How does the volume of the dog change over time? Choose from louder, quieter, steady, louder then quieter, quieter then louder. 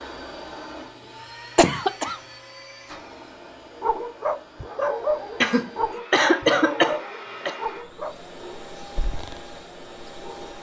quieter.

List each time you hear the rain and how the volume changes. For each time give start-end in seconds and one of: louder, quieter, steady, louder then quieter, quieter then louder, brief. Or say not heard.
not heard.